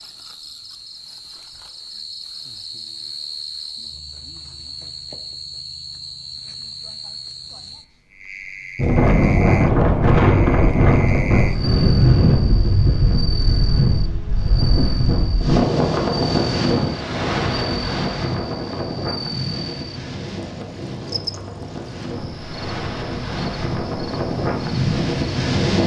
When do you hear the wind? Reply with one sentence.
The wind can be heard from 8.8 to 25.8 s.